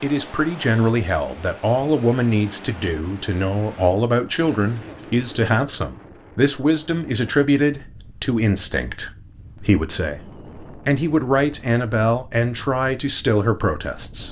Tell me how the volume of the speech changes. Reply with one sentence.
The loudness of the speech stays about the same.